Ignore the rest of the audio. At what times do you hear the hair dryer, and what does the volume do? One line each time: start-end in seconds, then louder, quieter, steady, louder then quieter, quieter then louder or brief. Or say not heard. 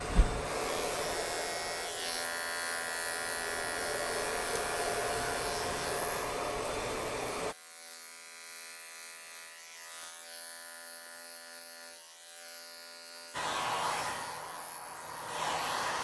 0.0-7.5 quieter then louder
13.3-15.9 brief.